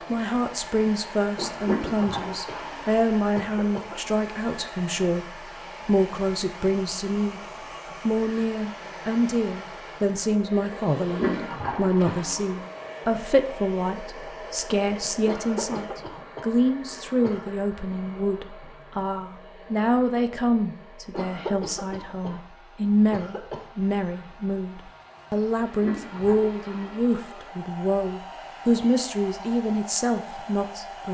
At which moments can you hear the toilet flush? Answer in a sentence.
You can hear the toilet flush from 1.6 to 2.9 s, from 11.1 to 12.7 s and from 25.8 to 27.1 s.